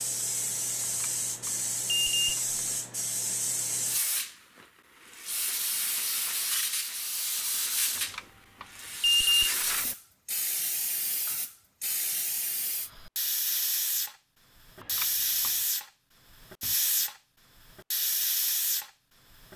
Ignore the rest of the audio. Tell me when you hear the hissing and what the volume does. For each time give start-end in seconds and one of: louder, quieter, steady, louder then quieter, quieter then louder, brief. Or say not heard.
0.0-19.5 steady.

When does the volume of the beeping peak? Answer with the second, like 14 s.
9 s.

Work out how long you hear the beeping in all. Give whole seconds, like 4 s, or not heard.
4 s.